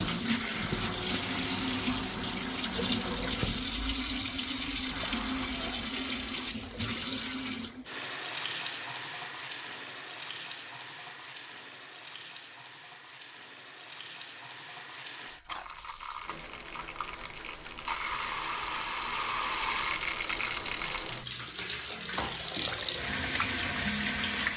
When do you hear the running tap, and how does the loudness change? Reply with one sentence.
The running tap can be heard from 0.0 to 24.5 s, getting quieter then louder.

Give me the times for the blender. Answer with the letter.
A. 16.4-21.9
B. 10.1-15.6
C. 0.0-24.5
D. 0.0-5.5
D.